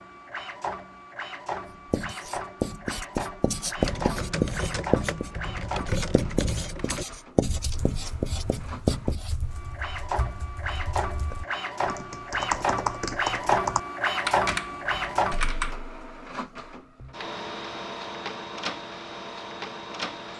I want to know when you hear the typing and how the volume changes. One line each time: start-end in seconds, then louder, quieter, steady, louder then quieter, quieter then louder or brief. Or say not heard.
3.8-15.8 quieter then louder.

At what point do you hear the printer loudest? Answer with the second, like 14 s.
14 s.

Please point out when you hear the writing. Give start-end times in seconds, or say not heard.
1.6-9.3.